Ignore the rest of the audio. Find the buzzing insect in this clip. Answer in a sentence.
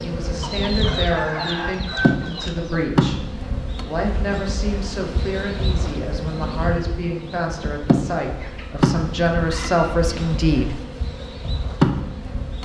The buzzing insect can be heard from 0.0 to 12.6 s.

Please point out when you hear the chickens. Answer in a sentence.
The chickens can be heard from 0.4 to 2.9 s and from 8.2 to 10.1 s.